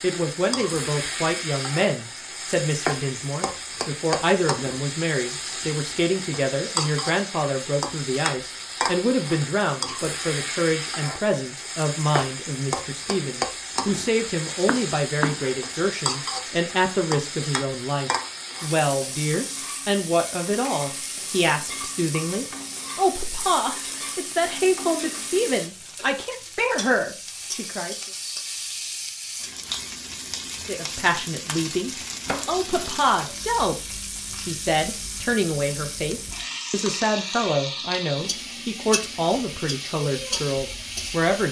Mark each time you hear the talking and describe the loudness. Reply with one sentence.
The talking can be heard from 0.0 to 27.9 s, at a steady volume; and from 30.6 to 41.4 s, at a steady volume.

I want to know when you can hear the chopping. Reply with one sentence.
The chopping can be heard from 14.2 to 15.6 s and from 32.2 to 33.0 s.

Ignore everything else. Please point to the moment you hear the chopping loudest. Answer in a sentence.
The volume of the chopping peaks at 15 seconds.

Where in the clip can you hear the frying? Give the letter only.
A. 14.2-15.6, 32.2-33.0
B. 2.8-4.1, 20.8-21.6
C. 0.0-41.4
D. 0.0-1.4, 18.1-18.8
C.